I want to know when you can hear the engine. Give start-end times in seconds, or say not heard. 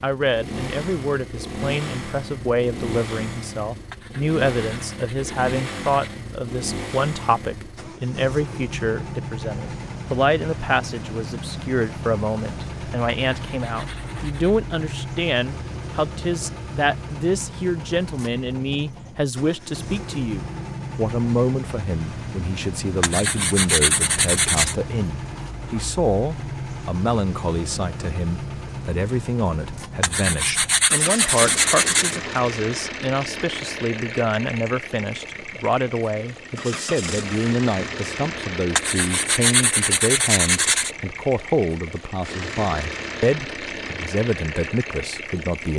0.0-45.7.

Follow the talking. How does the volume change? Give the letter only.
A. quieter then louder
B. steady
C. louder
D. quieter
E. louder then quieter
B.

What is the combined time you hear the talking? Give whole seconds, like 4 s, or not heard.
46 s.